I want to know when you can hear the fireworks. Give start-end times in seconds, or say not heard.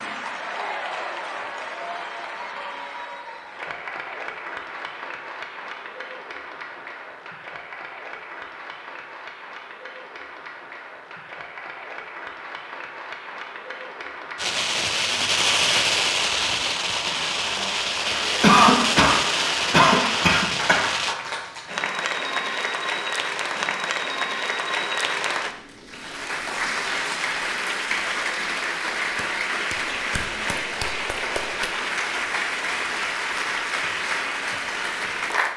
14.3-21.1.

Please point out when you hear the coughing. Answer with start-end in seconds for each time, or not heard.
18.4-20.9.